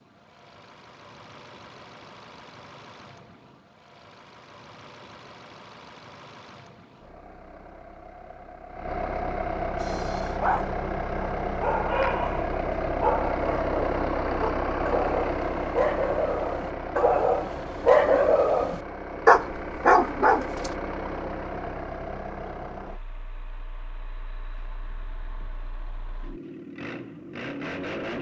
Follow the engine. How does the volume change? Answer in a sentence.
The volume of the engine goes up, then down.